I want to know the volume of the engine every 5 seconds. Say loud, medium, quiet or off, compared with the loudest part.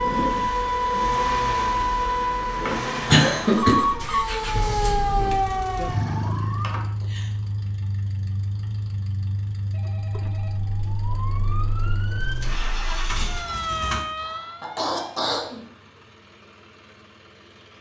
loud, loud, loud, quiet.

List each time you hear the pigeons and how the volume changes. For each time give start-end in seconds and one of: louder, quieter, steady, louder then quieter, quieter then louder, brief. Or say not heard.
not heard.